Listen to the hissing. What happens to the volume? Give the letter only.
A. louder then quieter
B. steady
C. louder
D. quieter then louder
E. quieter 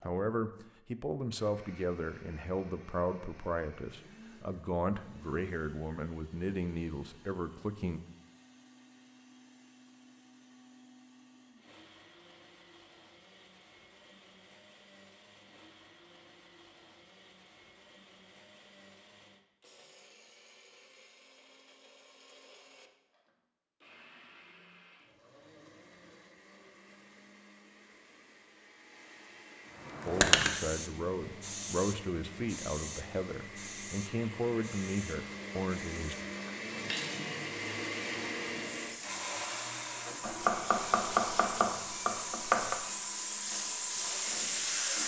D.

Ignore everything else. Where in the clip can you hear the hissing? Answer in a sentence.
The hissing can be heard from 29.8 to 45.0 s.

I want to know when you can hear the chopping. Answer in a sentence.
The chopping can be heard from 40.2 to 42.8 s.